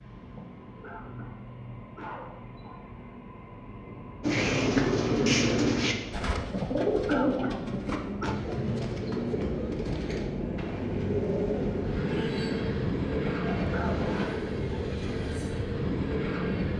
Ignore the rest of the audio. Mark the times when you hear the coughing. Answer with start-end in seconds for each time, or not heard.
0.3-2.9, 6.5-8.3, 13.2-13.9.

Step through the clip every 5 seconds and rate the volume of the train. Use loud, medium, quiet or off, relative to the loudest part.
quiet, medium, loud, loud.